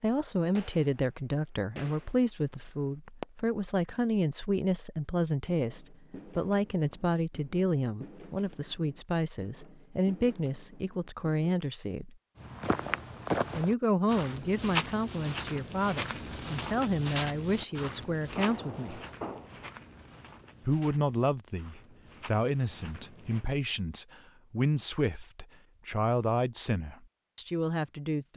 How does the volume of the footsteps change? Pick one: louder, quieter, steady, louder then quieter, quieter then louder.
quieter.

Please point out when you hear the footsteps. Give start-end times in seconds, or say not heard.
12.4-23.4.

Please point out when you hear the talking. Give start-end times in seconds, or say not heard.
0.0-12.2, 13.5-19.0, 20.6-28.3.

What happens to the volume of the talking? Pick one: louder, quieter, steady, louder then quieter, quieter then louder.
steady.